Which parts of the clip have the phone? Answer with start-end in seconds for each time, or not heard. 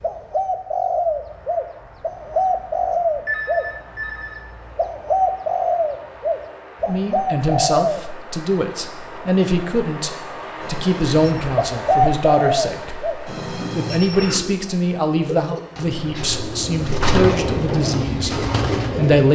1.8-4.4, 10.6-11.3, 13.2-14.4.